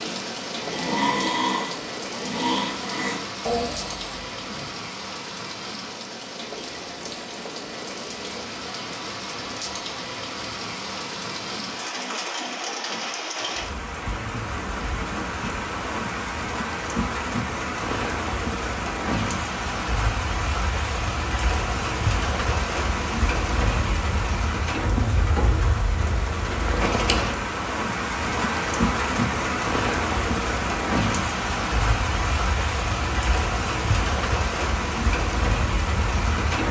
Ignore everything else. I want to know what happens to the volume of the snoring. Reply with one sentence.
The loudness of the snoring goes down.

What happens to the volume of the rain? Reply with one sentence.
The volume of the rain goes up.